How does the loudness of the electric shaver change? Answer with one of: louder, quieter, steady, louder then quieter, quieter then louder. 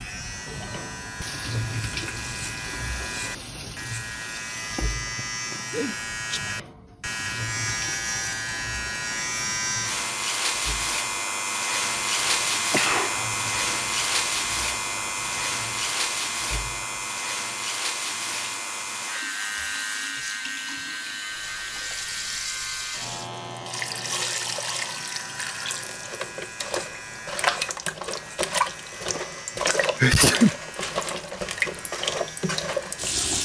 louder then quieter.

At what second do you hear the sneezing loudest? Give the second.
30 s.